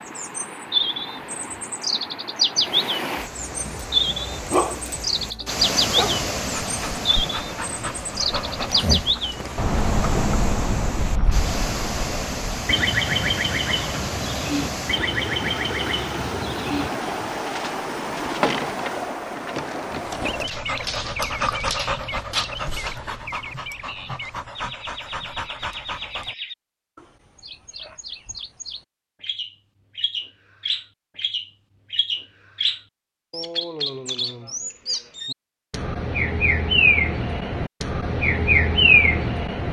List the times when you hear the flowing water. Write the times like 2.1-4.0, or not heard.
0.0-20.5.